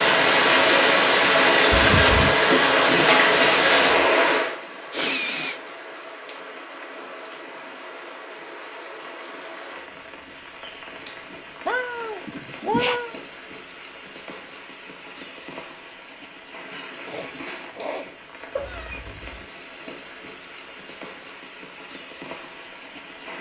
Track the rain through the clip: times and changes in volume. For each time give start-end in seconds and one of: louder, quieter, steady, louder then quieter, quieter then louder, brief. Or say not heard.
0.0-23.3 quieter.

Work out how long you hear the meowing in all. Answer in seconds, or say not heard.
3 s.